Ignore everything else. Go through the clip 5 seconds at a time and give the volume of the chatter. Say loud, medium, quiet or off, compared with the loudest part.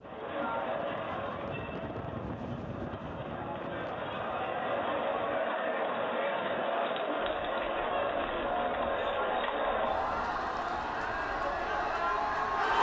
medium, loud, loud.